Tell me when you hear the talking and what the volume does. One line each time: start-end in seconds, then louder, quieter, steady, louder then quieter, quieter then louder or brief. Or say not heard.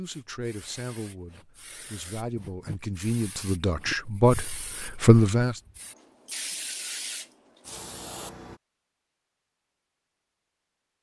0.0-5.5 louder.